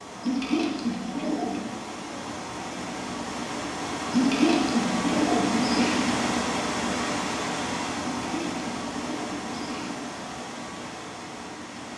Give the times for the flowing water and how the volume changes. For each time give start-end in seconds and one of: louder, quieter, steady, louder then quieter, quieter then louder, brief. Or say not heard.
0.0-11.9 louder then quieter.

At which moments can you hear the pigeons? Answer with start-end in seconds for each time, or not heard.
0.2-1.8, 4.1-6.1, 8.1-10.0.